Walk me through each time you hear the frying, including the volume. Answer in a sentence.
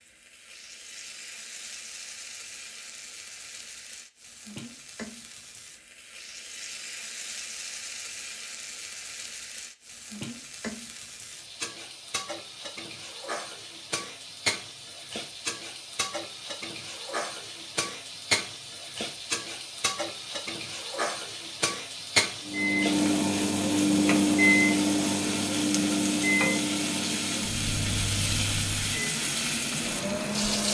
You can hear the frying from 0.0 to 30.6 s, getting louder.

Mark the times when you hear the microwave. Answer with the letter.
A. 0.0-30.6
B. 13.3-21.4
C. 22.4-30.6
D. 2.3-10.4
C.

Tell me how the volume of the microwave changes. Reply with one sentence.
The volume of the microwave goes down.